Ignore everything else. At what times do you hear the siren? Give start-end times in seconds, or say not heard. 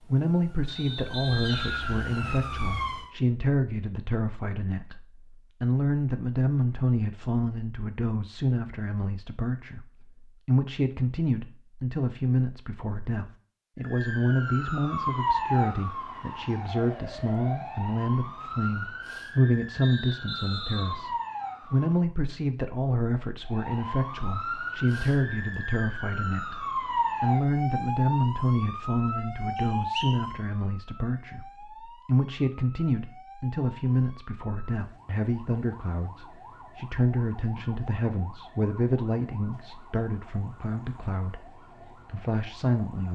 0.0-3.1, 13.8-22.1, 23.4-43.1.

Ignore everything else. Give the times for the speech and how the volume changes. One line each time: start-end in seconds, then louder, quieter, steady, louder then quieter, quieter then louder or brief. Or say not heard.
0.0-41.5 steady
42.0-43.1 brief.